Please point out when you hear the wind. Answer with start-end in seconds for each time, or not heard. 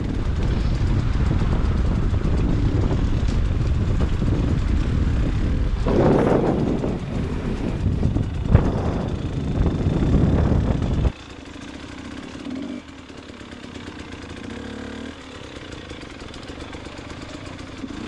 0.0-11.2.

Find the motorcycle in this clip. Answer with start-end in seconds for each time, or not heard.
0.0-18.0.